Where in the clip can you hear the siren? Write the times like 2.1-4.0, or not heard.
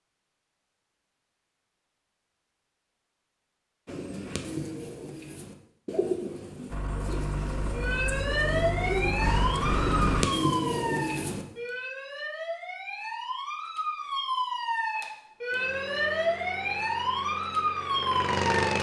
7.7-18.7.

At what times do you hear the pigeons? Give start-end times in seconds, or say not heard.
3.9-11.4.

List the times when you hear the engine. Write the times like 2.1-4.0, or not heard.
6.7-10.2, 15.5-18.7.